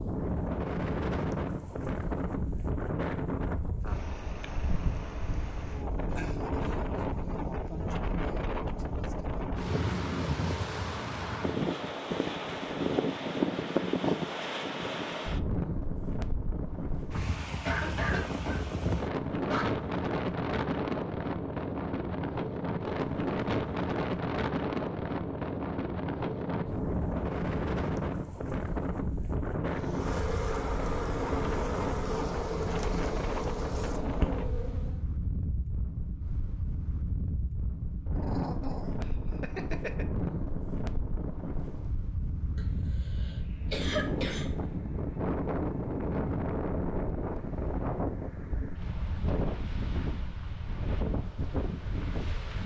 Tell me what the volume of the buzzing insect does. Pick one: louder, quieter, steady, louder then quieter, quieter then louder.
steady.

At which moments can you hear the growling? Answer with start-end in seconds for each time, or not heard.
38.1-40.0.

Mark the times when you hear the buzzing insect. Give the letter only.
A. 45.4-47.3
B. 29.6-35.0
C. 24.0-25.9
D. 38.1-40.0
B.